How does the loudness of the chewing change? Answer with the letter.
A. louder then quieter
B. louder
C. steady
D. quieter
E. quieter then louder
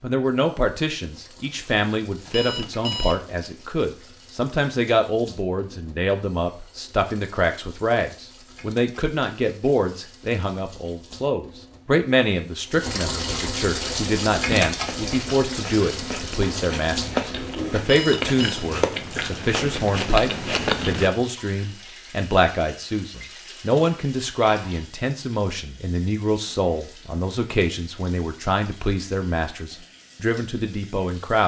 B.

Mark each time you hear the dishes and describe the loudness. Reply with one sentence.
The dishes can't be heard in this clip.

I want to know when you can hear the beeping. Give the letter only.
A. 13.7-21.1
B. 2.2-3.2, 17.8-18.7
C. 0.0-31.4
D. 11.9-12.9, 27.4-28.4
B.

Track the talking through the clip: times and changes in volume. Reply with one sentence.
The talking can be heard from 0.0 to 31.4 s, at a steady volume.